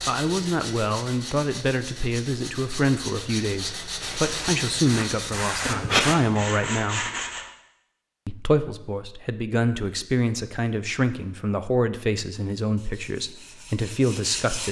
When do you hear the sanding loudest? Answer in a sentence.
The loudest moment of the sanding is at 6 seconds.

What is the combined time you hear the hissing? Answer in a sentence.
The hissing can be heard for 2 seconds in total.